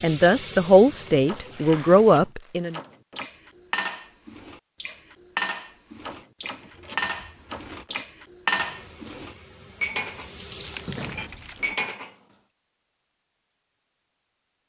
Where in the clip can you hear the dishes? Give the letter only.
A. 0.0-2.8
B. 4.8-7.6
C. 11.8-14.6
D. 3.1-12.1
D.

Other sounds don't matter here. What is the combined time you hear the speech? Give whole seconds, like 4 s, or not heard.
3 s.